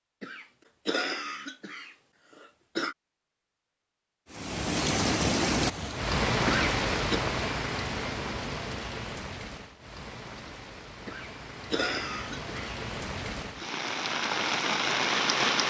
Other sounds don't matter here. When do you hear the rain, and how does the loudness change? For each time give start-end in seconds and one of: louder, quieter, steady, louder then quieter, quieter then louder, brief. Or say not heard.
4.3-15.6 quieter then louder.